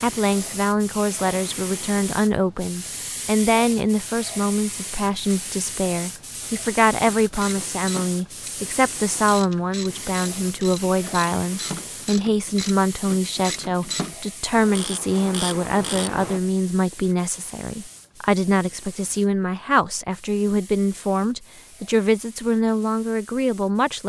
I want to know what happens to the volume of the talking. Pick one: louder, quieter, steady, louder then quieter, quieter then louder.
steady.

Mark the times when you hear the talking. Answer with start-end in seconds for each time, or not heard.
0.0-24.0.